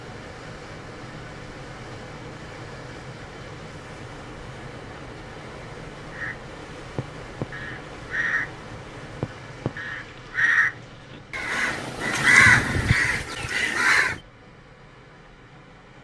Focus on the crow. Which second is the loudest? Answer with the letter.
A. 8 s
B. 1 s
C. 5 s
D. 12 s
D.